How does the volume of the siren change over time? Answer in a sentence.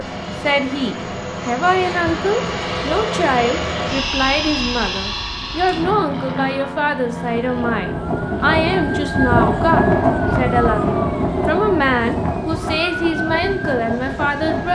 The loudness of the siren goes up, then down.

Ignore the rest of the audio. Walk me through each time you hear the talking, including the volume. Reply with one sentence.
The talking can be heard from 0.0 to 14.6 s, at a steady volume.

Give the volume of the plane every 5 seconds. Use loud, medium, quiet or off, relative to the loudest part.
loud, loud, quiet.